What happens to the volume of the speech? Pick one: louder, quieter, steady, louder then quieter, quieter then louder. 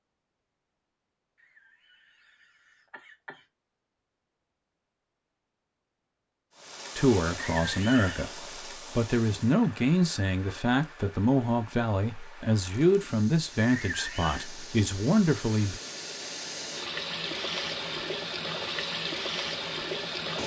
steady.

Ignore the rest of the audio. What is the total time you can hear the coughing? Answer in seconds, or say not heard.
4 s.